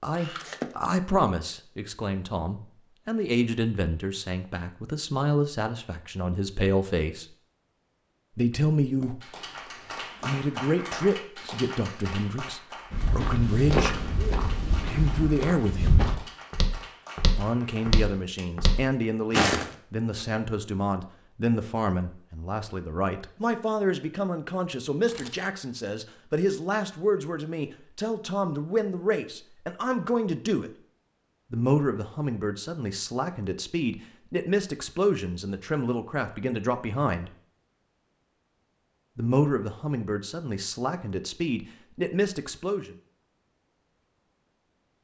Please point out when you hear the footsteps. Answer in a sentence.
You can hear the footsteps from 12.9 to 20.2 s.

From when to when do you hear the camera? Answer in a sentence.
The camera can be heard from 0.1 to 0.9 s and from 24.9 to 25.4 s.